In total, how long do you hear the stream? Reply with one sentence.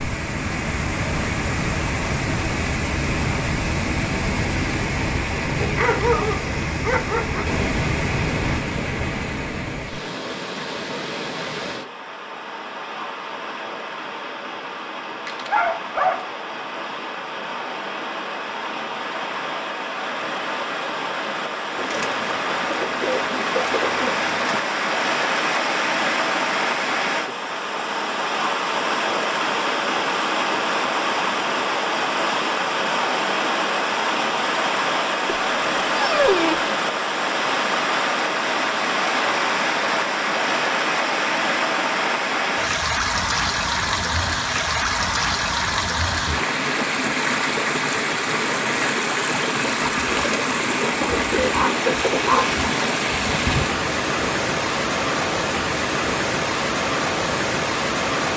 The stream can be heard for 58 seconds in total.